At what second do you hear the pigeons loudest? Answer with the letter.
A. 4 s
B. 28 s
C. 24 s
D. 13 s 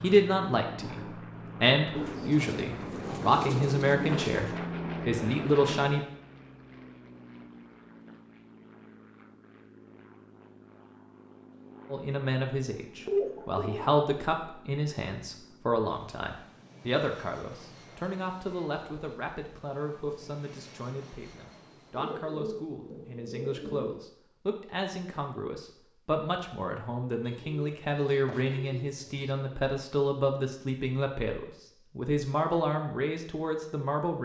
D.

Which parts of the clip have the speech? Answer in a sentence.
The speech can be heard from 0.0 to 6.0 s and from 11.9 to 34.2 s.